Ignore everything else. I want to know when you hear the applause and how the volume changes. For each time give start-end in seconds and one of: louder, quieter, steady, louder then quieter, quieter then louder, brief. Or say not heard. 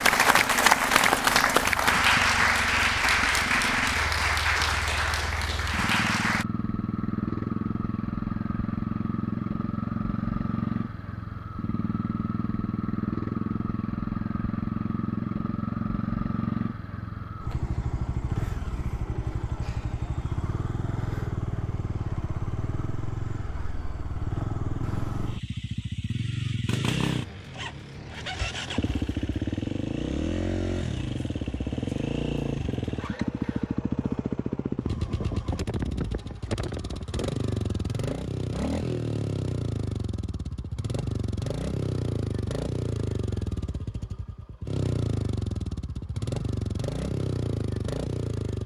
0.0-6.5 quieter.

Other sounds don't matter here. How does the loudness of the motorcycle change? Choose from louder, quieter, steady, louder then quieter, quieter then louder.
steady.